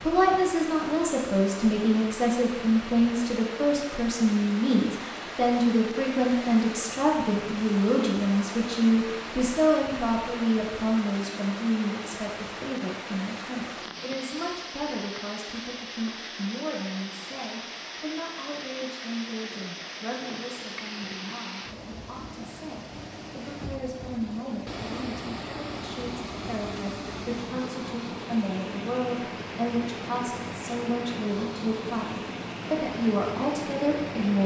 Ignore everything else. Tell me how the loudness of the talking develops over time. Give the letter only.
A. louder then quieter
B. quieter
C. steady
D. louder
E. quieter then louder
E.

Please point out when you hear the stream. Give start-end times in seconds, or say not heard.
0.0-34.4.